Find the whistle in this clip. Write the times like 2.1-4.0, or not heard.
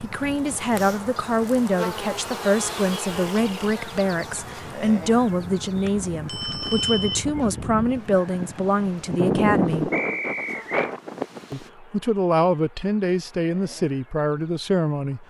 9.9-10.9.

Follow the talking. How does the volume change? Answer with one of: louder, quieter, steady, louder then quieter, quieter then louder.
steady.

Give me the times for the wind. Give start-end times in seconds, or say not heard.
0.0-11.7.